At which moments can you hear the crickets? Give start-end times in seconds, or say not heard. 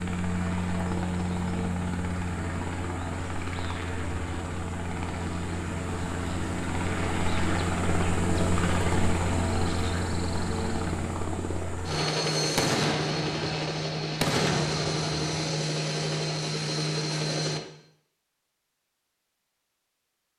not heard.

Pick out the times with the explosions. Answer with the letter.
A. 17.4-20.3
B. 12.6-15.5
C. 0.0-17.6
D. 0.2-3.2
B.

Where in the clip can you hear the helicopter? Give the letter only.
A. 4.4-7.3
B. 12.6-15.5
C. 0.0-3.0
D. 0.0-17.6
D.